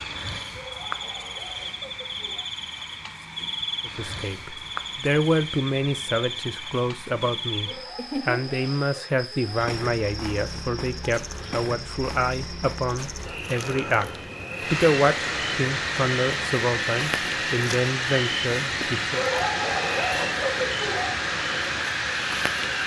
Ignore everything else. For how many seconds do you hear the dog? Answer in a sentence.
You can hear the dog for 6 seconds altogether.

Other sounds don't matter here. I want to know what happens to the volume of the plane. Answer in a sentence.
The loudness of the plane goes up.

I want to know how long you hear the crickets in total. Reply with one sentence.
The crickets can be heard for 23 seconds in total.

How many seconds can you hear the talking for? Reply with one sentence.
The talking can be heard for 15 seconds in total.